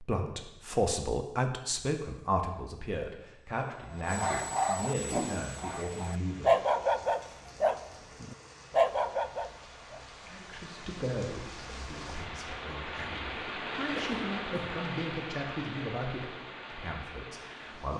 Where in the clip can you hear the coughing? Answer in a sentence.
The coughing can be heard from 13.9 to 14.8 s.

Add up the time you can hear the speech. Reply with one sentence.
You can hear the speech for 14 seconds altogether.